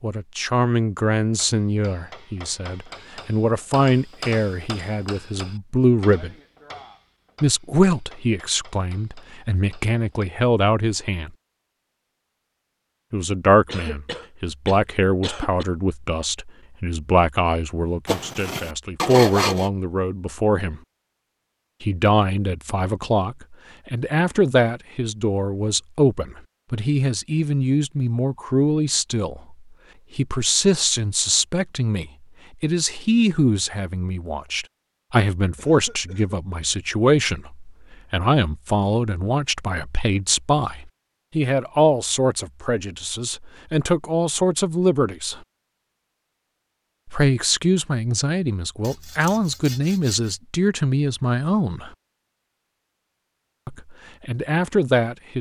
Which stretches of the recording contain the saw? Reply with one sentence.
The saw can be heard from 18.1 to 19.7 s and from 48.8 to 50.4 s.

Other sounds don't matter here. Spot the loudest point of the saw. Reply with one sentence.
The volume of the saw peaks at 19 seconds.